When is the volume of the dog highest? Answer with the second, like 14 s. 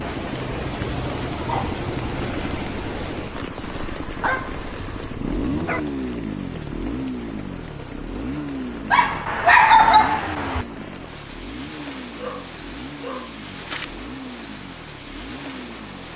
10 s.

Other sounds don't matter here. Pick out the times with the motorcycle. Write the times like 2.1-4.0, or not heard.
0.0-16.1.